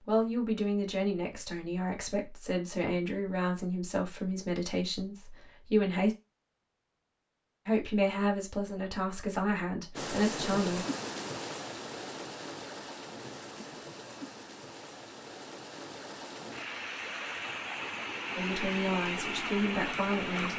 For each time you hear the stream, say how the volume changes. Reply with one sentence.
The stream can be heard from 9.9 to 20.5 s, getting quieter then louder.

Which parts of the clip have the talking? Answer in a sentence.
You can hear the talking from 0.1 to 6.2 s, from 7.7 to 10.8 s and from 18.4 to 20.5 s.